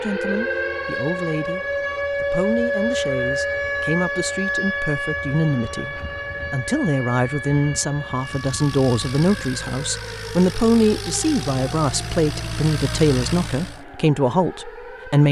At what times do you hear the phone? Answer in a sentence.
The phone can be heard from 0.1 to 0.9 s.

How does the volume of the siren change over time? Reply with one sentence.
The volume of the siren goes down.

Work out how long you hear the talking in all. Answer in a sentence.
The talking can be heard for 15 seconds in total.